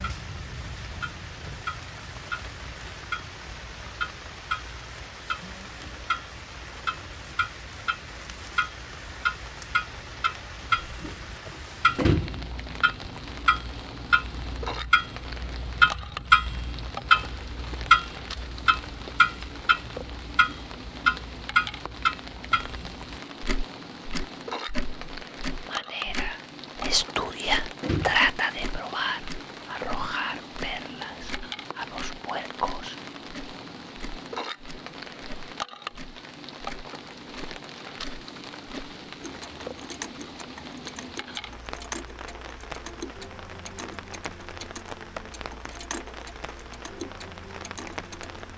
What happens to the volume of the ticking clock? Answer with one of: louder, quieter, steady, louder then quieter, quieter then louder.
louder then quieter.